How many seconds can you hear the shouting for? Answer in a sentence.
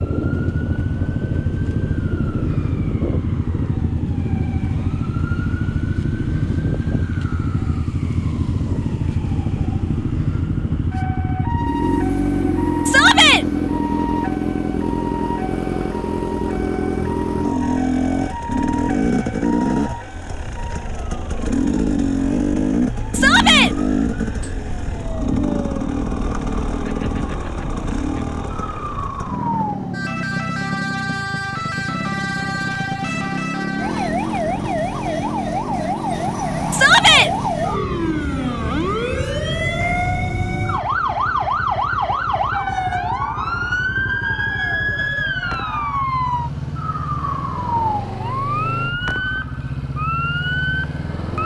You can hear the shouting for 2 seconds altogether.